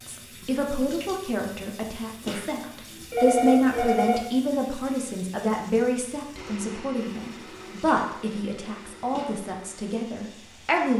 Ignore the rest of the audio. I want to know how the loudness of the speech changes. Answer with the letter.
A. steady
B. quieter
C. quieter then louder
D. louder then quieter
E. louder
D.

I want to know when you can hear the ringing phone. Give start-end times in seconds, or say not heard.
2.2-4.2.